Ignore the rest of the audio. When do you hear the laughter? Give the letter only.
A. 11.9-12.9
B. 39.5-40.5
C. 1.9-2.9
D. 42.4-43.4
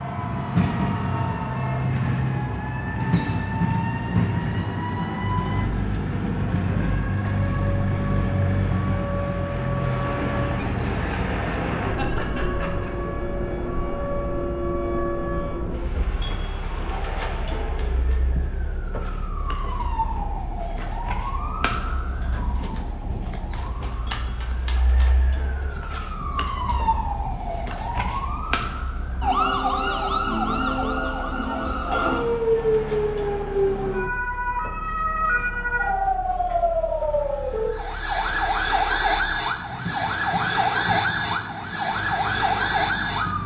A.